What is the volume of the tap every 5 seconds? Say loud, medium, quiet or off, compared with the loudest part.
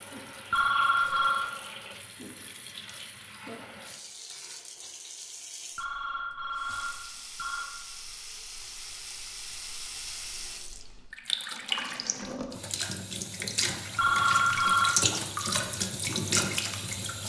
quiet, quiet, loud, loud.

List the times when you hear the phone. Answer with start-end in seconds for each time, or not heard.
0.5-1.5, 5.8-7.7, 13.9-14.9.